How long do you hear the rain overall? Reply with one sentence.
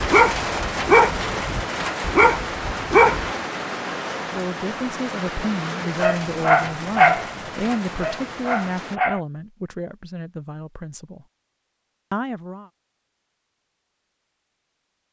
You can hear the rain for 9 seconds altogether.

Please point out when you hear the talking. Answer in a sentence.
The talking can be heard from 4.3 to 11.2 s and from 12.1 to 12.7 s.